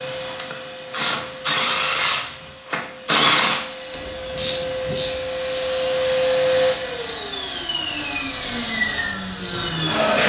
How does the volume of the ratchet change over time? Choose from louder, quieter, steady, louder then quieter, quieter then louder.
quieter.